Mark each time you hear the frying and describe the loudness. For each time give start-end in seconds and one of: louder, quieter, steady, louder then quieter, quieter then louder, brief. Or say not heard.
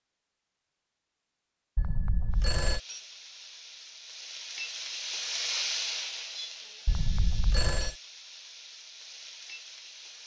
2.3-10.2 louder then quieter.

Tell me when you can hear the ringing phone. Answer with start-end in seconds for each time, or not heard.
1.8-2.8, 6.8-8.0.